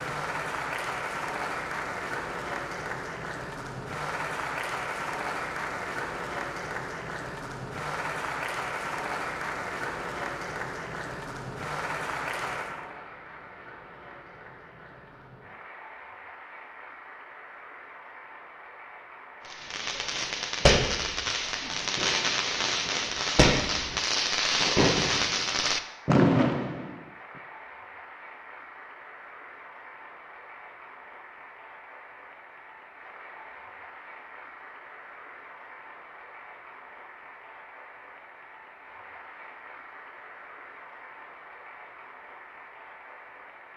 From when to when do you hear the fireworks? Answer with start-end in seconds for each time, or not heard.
19.5-27.0.